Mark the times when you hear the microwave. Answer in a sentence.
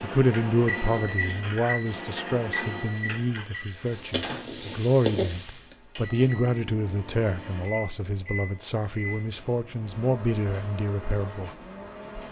You can hear the microwave from 0.0 to 12.2 s.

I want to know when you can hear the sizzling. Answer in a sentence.
The sizzling can be heard from 0.0 to 5.8 s.